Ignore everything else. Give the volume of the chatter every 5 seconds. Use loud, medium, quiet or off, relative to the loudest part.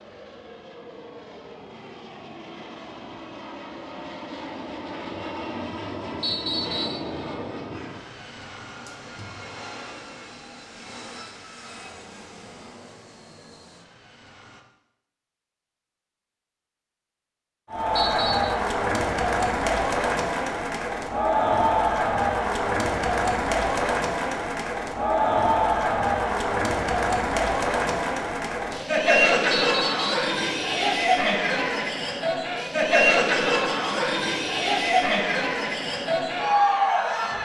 off, off, off, loud, loud, loud, loud, loud.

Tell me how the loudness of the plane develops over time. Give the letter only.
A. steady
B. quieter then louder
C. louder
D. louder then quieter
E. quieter
D.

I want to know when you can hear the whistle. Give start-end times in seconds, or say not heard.
6.2-7.0, 17.9-18.6, 29.5-30.1.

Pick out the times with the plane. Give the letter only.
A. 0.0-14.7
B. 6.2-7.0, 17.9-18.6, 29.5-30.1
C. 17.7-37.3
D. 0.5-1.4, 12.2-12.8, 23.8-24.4
A.